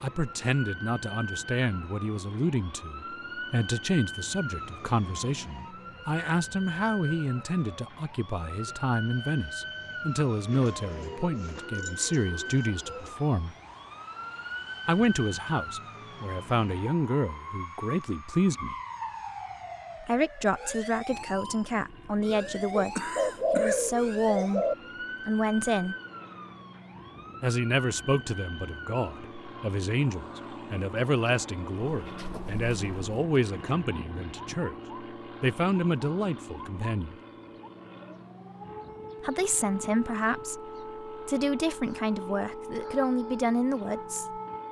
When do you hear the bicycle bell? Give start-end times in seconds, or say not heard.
not heard.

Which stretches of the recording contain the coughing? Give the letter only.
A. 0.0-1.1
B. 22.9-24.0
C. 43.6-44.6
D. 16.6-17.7
B.